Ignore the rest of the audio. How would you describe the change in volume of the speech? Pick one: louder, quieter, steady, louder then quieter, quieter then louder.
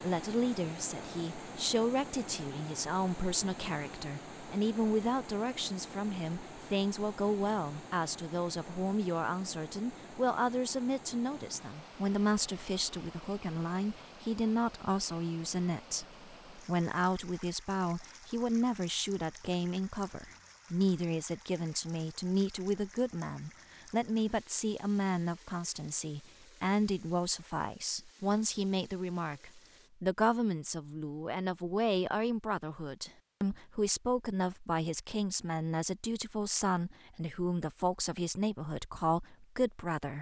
steady.